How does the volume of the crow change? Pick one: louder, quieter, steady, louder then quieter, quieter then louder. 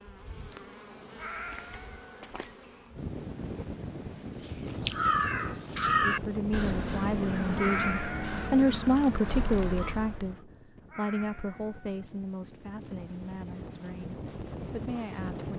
quieter.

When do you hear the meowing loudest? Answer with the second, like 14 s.
8 s.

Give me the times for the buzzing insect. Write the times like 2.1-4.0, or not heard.
0.0-3.1.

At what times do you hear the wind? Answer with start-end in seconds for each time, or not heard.
3.0-15.5.